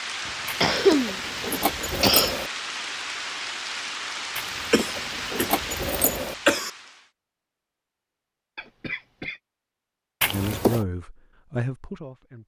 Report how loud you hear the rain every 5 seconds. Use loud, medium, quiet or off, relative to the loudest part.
loud, loud, off.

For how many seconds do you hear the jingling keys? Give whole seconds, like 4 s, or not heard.
5 s.